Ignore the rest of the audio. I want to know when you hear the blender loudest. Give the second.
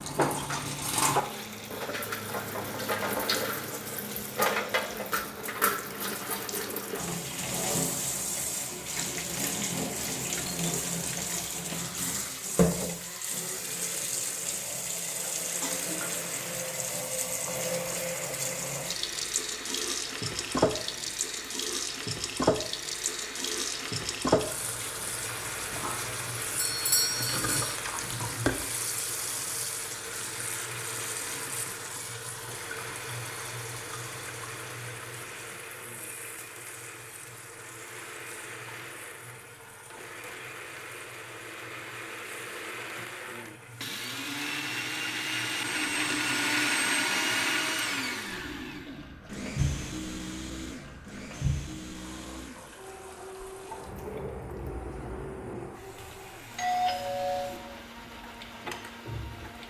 47 s.